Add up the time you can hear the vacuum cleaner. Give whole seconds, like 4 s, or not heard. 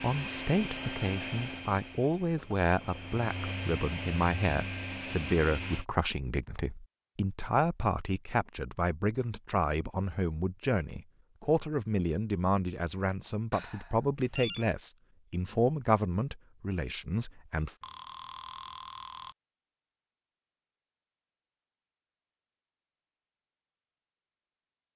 6 s.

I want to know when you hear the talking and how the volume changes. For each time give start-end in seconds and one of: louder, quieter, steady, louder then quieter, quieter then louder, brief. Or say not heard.
0.0-17.8 steady.